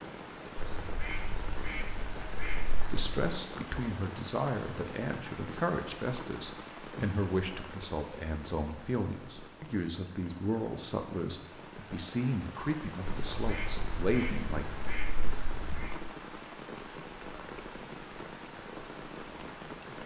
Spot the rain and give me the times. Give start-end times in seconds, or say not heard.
0.0-20.0.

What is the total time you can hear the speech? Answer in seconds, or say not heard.
12 s.